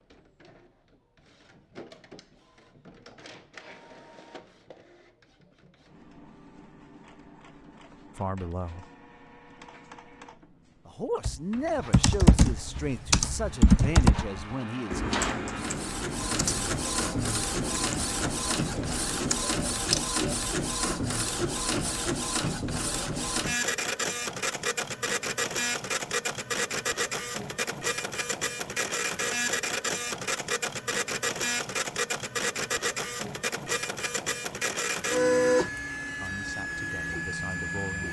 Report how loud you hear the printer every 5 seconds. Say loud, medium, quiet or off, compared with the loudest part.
quiet, quiet, quiet, loud, loud, loud, loud, loud.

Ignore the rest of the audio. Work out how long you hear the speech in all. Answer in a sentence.
The speech can be heard for 7 seconds in total.